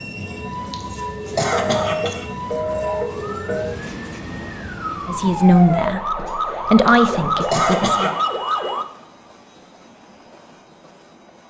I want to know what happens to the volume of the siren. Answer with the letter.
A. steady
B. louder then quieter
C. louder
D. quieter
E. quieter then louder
C.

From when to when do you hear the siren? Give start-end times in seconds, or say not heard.
2.7-8.8.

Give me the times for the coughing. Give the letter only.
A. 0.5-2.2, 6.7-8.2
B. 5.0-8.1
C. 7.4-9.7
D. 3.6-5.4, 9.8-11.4
A.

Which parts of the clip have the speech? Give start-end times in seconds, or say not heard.
5.0-8.1.